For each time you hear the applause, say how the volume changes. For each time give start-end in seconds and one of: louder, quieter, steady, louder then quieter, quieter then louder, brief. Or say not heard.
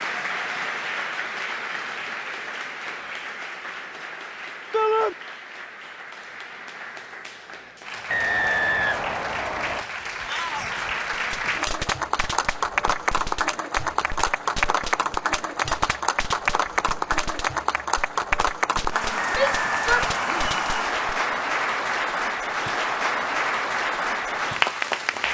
0.0-25.2 louder.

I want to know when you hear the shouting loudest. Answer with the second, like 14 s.
5 s.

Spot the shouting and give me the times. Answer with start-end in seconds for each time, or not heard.
4.7-5.2, 10.2-10.8, 19.3-20.5.